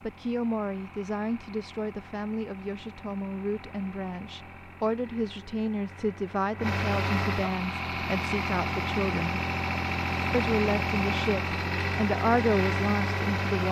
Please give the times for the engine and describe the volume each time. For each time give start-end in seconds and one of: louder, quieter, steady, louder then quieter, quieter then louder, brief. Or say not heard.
0.0-13.6 louder.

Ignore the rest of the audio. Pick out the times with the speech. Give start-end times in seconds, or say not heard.
0.0-9.4, 10.3-13.6.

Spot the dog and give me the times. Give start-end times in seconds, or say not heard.
not heard.